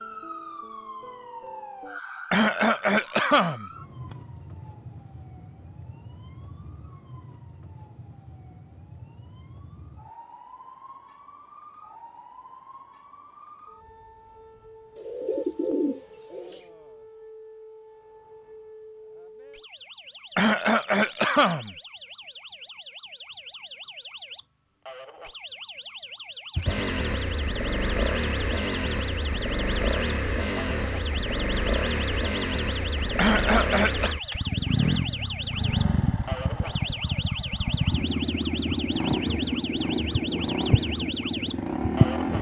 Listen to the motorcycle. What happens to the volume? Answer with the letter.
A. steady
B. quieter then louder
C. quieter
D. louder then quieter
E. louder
A.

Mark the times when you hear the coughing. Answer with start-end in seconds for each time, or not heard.
2.3-4.2, 20.4-21.8, 33.1-34.1.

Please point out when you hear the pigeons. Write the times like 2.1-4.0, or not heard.
14.9-16.6.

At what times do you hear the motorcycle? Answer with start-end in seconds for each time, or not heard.
26.6-42.3.